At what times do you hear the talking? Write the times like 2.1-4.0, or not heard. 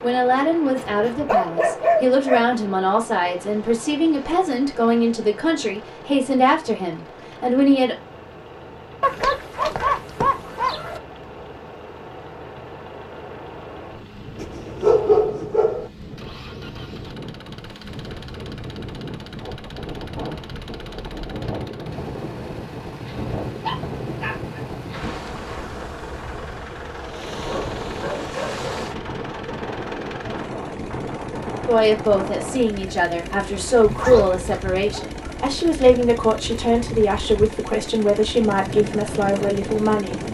0.0-8.0, 31.6-40.2.